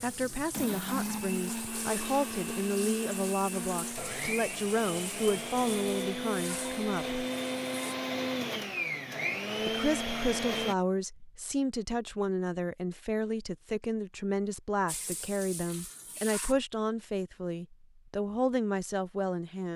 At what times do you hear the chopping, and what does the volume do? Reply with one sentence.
The chopping can't be heard in this clip.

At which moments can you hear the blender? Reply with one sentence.
You can hear the blender from 0.0 to 10.8 s.